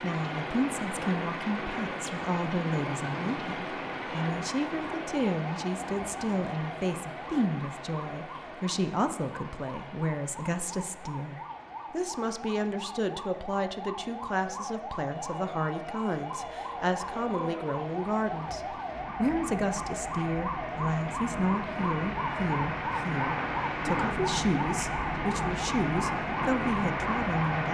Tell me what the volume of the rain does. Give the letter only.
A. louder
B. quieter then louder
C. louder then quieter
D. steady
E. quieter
B.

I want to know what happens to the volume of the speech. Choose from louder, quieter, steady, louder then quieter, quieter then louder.
steady.